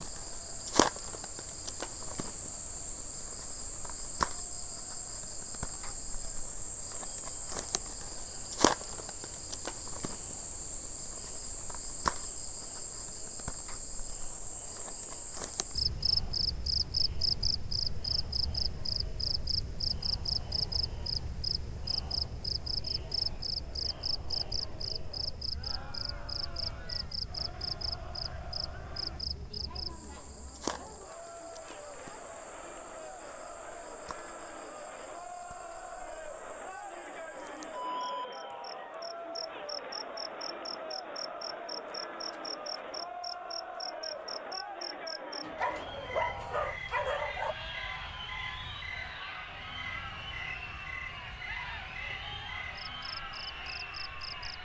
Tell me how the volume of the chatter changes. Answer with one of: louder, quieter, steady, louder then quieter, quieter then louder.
louder.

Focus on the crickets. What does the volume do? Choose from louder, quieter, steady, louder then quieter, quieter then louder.
quieter.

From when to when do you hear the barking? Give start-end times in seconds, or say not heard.
45.5-47.5.